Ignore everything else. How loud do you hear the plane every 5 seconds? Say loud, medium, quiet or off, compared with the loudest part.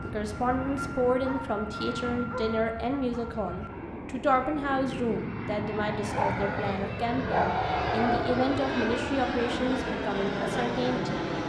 medium, loud, loud.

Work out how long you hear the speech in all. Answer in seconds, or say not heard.
11 s.